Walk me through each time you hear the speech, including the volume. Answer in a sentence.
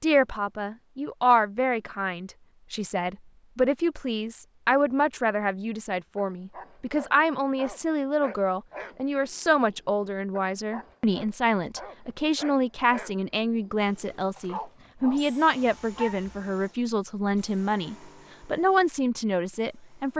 You can hear the speech from 0.0 to 20.1 s, at a steady volume.